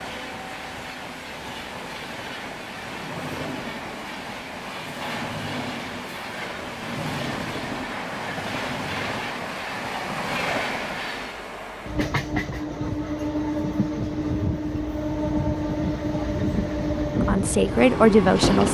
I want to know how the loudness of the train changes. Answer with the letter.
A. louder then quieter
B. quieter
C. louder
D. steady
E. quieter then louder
C.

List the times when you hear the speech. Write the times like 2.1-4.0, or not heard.
17.2-18.6.